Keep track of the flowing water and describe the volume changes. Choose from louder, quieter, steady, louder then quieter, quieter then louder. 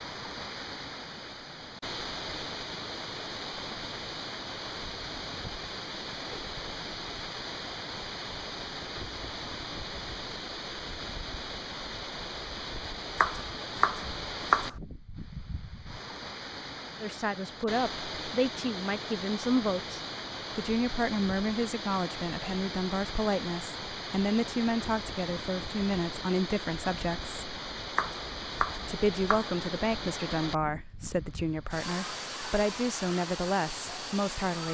steady.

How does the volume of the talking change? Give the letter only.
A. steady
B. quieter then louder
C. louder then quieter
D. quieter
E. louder
A.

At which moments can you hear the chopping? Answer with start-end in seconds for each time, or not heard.
13.2-14.8, 27.9-29.6.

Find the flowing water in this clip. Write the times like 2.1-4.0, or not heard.
0.0-34.6.